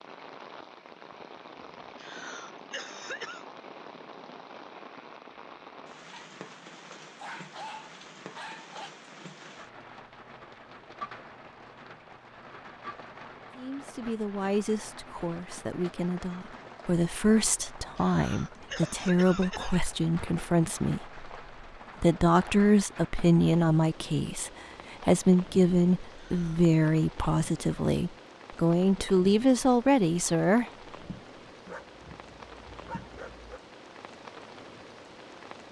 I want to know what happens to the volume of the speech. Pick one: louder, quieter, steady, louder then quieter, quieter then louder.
louder.